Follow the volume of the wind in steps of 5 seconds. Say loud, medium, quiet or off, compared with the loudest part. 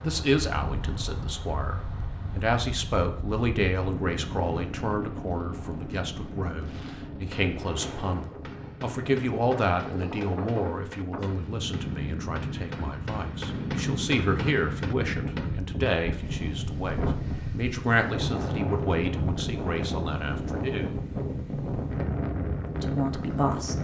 medium, medium, loud, loud, loud.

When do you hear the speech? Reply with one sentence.
You can hear the speech from 0.0 to 21.1 s and from 22.8 to 23.7 s.